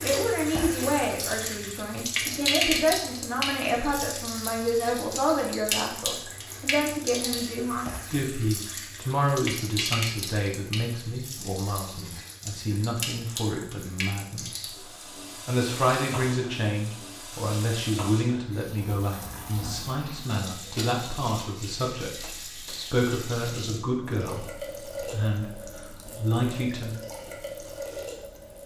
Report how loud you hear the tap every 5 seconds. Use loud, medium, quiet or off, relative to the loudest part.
loud, loud, medium, medium, medium, medium.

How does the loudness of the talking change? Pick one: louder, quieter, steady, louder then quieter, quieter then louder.
steady.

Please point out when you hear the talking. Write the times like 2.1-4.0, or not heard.
0.0-14.8, 15.4-26.9.